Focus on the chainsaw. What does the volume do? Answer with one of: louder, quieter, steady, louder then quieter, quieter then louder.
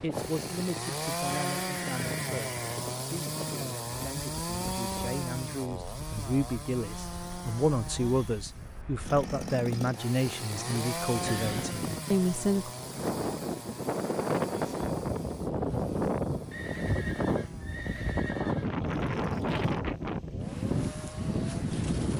quieter.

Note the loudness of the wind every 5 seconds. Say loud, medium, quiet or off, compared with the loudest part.
medium, quiet, loud, loud, loud.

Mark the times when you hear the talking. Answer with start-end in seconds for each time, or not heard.
0.0-12.7.